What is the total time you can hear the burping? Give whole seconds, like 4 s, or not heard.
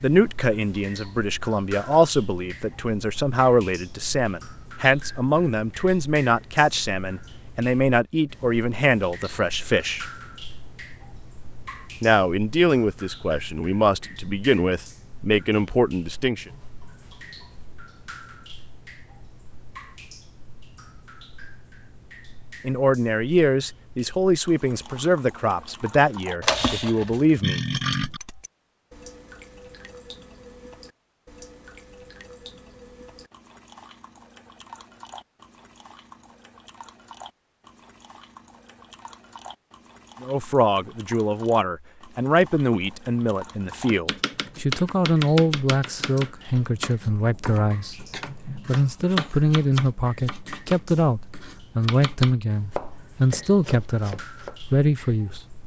2 s.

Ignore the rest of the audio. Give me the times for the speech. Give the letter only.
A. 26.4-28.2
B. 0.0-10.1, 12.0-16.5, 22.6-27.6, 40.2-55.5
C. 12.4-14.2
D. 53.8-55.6
B.